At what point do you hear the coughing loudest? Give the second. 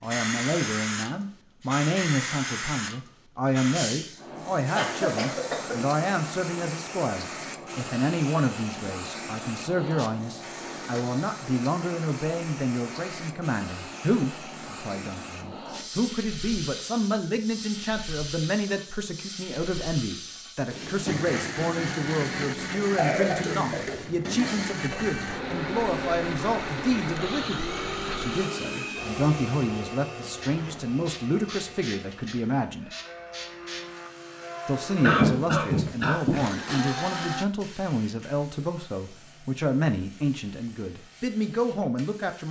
35 s.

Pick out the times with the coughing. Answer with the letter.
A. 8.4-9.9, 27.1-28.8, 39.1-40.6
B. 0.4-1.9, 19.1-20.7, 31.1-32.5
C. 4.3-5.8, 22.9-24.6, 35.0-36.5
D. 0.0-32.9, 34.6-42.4
C.